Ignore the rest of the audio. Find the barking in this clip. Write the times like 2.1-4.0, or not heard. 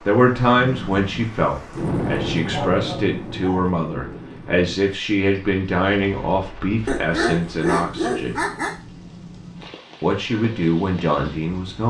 2.4-3.7, 6.8-8.8.